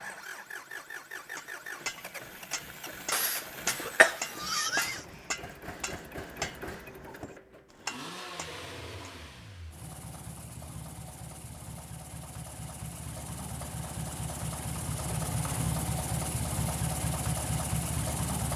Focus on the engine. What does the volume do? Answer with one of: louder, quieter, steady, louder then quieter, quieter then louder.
louder.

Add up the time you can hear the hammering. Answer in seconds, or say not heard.
8 s.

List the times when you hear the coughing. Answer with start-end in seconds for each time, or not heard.
3.1-5.0.